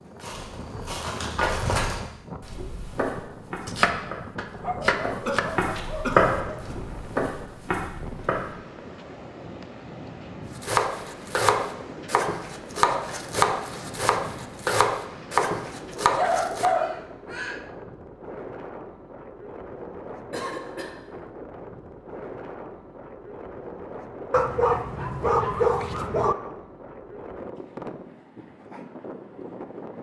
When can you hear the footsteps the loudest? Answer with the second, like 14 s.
6 s.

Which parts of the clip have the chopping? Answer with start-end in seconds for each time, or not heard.
3.6-5.5, 10.6-16.7.